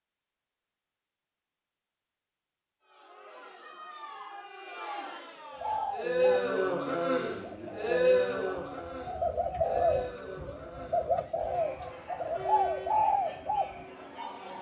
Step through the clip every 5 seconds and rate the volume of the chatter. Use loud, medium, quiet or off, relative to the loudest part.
quiet, loud, quiet.